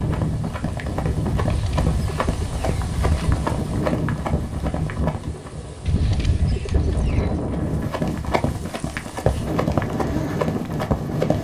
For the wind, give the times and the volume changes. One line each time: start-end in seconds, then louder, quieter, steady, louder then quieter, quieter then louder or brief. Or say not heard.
0.0-11.3 steady.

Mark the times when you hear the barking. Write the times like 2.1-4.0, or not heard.
not heard.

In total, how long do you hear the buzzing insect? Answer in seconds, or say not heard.
not heard.